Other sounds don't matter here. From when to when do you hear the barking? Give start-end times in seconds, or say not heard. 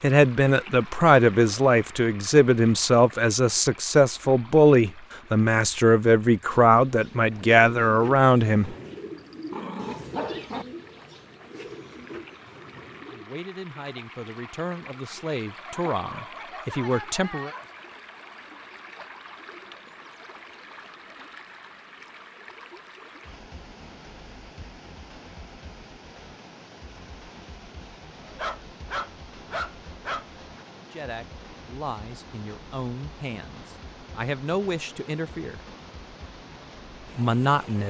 8.6-10.7, 15.7-17.7, 28.2-30.6.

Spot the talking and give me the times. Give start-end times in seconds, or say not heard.
0.0-8.8, 13.1-17.5, 30.8-35.6, 37.1-37.8.